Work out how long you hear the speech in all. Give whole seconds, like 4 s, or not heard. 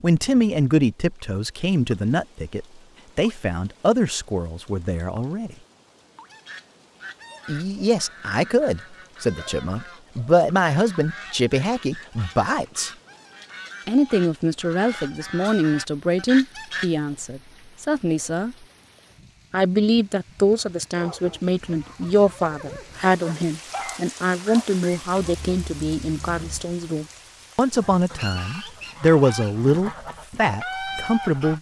28 s.